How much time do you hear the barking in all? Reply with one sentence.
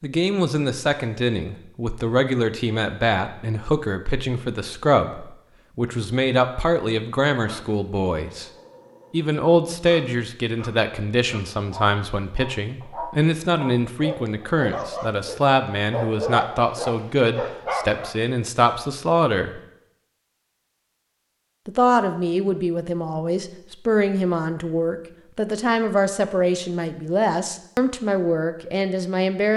You can hear the barking for 11 seconds altogether.